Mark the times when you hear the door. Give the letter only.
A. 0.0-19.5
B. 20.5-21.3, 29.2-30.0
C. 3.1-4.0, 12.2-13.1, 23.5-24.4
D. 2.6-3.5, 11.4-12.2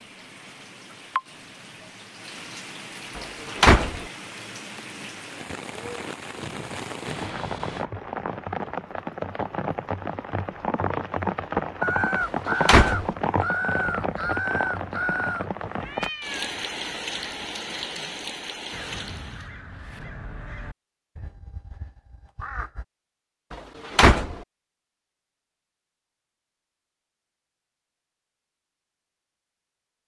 C.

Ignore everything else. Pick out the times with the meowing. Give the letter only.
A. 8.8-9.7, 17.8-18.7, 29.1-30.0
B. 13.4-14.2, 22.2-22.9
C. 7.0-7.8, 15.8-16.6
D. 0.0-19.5
C.